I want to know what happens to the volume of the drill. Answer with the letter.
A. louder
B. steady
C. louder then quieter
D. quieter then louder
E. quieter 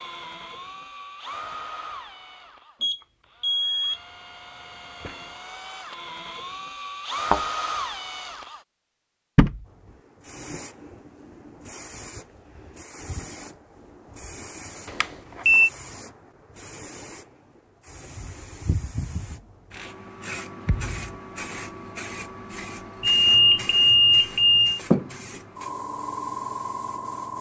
D.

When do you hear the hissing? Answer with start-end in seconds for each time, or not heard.
9.7-27.3.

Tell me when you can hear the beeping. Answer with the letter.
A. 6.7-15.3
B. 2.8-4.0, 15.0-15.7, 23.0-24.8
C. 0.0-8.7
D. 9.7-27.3
B.